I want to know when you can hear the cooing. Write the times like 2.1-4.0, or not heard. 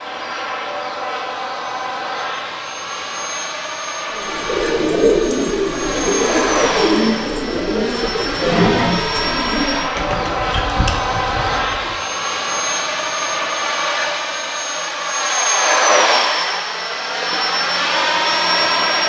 4.1-11.9.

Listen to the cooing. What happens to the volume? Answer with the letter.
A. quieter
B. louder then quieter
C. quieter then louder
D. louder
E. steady
A.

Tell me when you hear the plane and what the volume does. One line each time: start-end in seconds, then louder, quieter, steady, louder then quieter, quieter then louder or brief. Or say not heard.
0.0-19.0 louder.